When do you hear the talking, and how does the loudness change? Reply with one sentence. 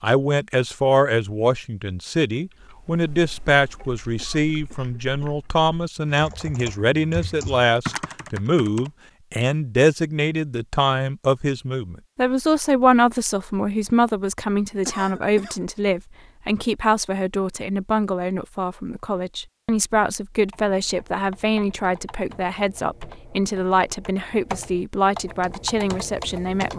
You can hear the talking from 0.0 to 26.7 s, at a steady volume.